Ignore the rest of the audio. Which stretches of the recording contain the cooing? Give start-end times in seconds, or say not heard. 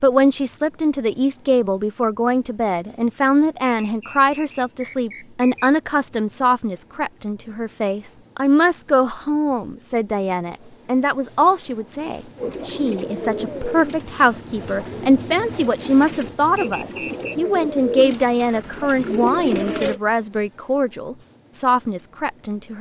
12.3-20.0.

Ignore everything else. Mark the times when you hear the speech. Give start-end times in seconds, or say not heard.
0.0-22.7.